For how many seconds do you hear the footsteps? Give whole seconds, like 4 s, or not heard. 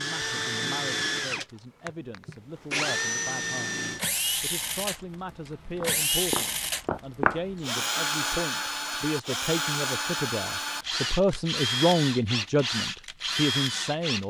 2 s.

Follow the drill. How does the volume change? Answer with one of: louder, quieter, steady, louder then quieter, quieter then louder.
steady.